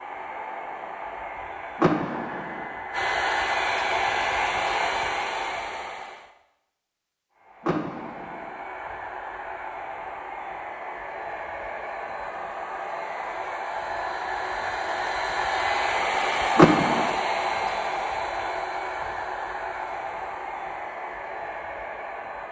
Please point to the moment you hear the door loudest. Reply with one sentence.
The volume of the door peaks at 17 seconds.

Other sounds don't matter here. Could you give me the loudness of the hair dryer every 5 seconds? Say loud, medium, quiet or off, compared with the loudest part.
loud, medium, medium, loud, medium.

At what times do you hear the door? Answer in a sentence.
The door can be heard from 1.8 to 2.6 s, from 7.6 to 8.5 s and from 16.6 to 17.1 s.